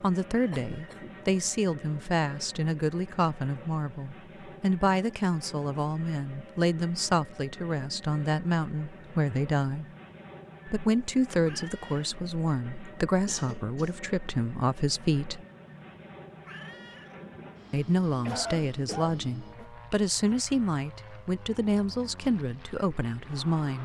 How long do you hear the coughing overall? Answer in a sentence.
The coughing can be heard for 3 seconds in total.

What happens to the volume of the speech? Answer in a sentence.
The loudness of the speech stays about the same.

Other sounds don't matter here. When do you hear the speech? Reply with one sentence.
The speech can be heard from 0.0 to 9.8 s, from 10.7 to 15.4 s and from 17.7 to 23.7 s.